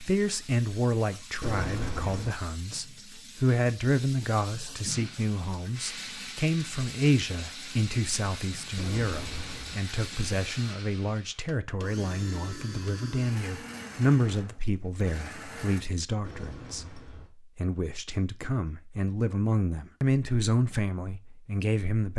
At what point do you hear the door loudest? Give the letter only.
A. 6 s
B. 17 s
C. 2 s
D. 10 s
C.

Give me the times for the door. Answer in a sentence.
The door can be heard from 1.4 to 2.4 s, from 8.8 to 9.8 s and from 16.2 to 17.3 s.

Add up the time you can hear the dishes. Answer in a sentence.
The dishes can't be heard in this clip.